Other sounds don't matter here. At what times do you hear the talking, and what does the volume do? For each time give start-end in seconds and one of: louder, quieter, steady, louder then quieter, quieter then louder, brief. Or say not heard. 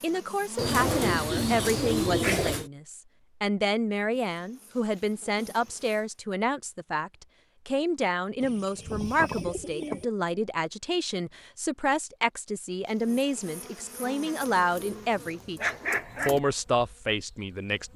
0.0-17.9 steady.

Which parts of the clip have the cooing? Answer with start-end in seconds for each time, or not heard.
0.6-2.7, 8.4-10.1, 14.4-16.4.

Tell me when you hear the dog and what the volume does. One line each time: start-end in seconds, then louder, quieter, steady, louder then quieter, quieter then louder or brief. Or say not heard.
not heard.